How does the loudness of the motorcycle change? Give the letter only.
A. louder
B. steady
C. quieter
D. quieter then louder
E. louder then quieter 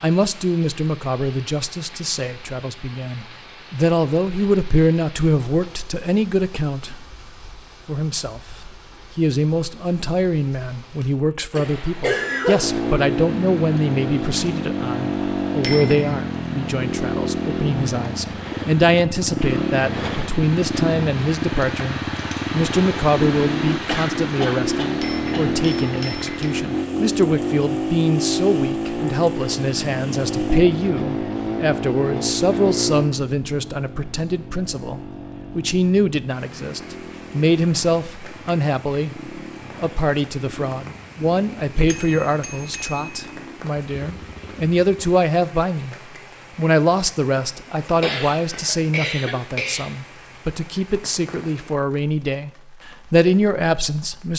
C.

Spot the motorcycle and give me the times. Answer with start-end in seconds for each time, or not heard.
12.6-45.1.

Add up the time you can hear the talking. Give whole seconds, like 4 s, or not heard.
52 s.